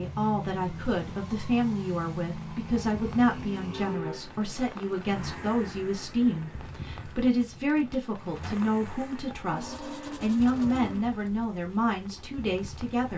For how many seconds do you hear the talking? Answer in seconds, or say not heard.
13 s.